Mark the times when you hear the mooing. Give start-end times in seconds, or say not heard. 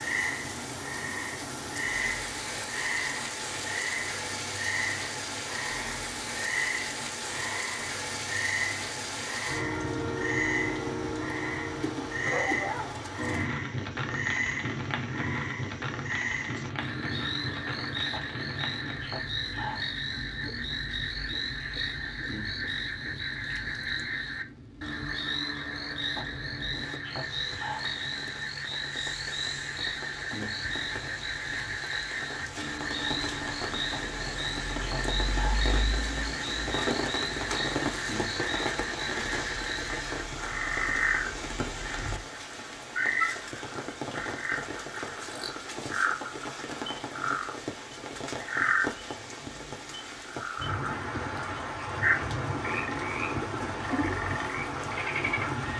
not heard.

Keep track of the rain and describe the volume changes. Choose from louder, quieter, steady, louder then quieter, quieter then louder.
quieter then louder.